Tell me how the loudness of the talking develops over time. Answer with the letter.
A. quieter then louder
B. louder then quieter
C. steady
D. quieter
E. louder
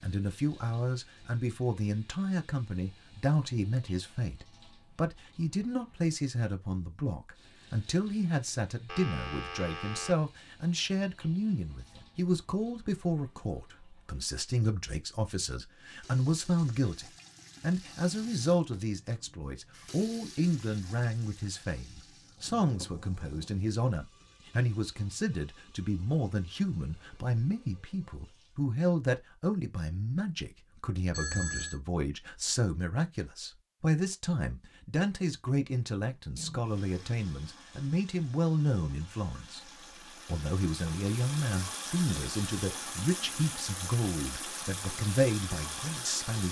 C.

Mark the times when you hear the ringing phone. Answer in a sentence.
The ringing phone can be heard from 8.8 to 10.2 s and from 31.1 to 31.8 s.